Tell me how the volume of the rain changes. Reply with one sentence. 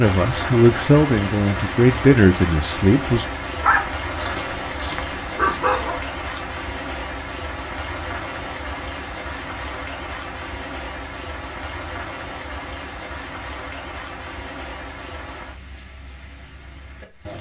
The loudness of the rain goes down.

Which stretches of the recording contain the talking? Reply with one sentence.
You can hear the talking from 0.0 to 3.2 s.